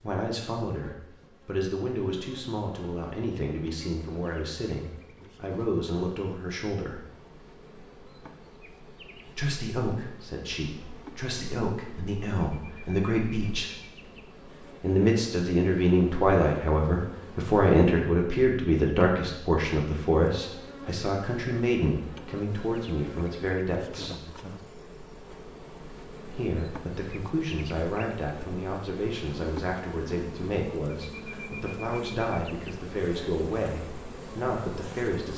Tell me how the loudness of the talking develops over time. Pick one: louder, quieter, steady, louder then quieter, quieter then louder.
louder then quieter.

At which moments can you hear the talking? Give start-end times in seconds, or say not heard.
0.0-7.0, 9.2-13.7, 14.8-24.2, 26.3-35.3.